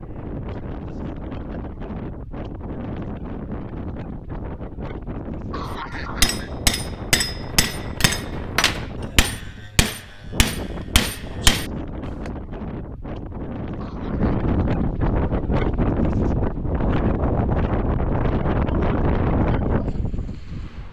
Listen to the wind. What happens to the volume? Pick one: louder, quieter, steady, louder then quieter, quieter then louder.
louder.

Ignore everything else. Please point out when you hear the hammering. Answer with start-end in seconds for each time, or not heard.
5.9-12.3.